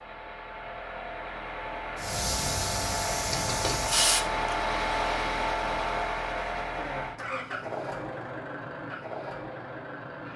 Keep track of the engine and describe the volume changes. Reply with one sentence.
The volume of the engine goes up, then down.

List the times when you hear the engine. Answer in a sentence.
The engine can be heard from 0.0 to 10.3 s.